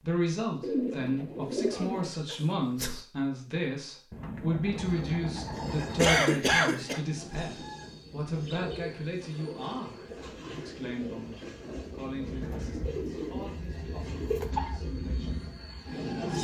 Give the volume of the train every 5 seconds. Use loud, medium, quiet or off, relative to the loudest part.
off, medium, medium, loud.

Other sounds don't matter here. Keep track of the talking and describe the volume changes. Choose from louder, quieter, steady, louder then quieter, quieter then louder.
quieter.